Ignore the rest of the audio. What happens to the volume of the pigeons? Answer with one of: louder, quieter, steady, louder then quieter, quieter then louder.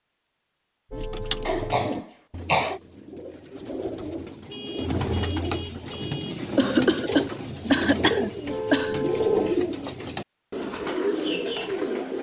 louder.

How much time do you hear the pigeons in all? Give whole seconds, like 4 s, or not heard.
11 s.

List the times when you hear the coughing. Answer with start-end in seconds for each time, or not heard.
1.4-2.8, 6.5-9.0.